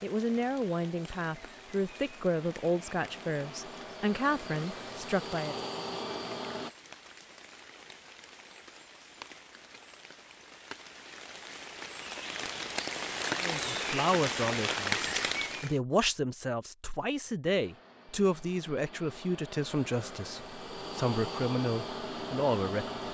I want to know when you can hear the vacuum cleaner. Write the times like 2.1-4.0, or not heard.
0.1-6.7, 17.4-23.0.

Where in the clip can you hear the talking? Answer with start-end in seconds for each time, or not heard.
0.0-5.5, 13.3-23.0.